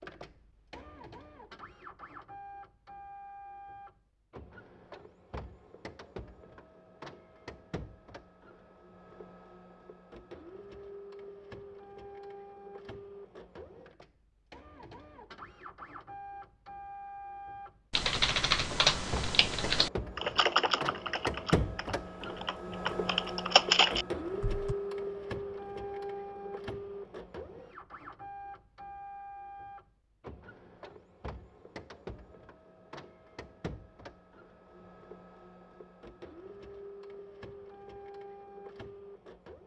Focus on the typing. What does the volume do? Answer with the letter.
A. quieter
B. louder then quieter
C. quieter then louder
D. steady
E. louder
C.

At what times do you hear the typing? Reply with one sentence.
You can hear the typing from 17.9 to 24.8 s.